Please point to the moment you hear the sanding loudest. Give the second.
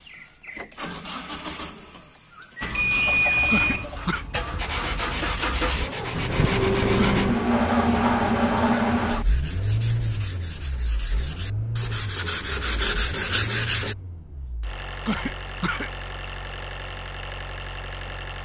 13 s.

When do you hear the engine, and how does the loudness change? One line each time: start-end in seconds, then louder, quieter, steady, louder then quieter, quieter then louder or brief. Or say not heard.
0.0-18.3 louder then quieter.